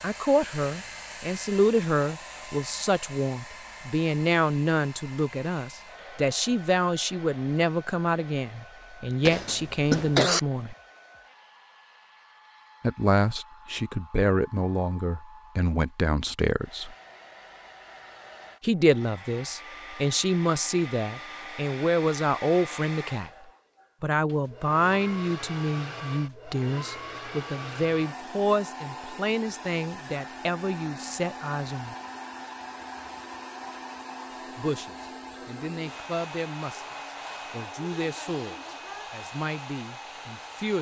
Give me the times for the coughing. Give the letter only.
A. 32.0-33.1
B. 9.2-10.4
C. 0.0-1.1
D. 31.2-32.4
B.